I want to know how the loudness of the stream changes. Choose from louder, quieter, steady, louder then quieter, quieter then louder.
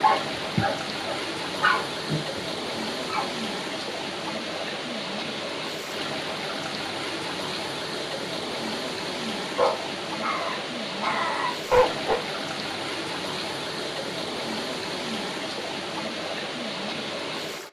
steady.